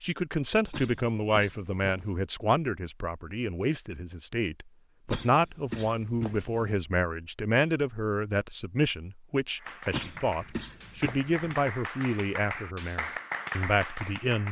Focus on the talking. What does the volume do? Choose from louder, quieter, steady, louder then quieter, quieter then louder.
steady.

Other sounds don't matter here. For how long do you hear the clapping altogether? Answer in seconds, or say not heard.
5 s.